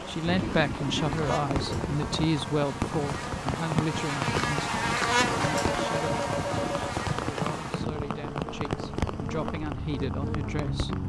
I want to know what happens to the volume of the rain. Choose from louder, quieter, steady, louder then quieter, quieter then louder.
steady.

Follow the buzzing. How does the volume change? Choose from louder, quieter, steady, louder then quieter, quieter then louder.
louder then quieter.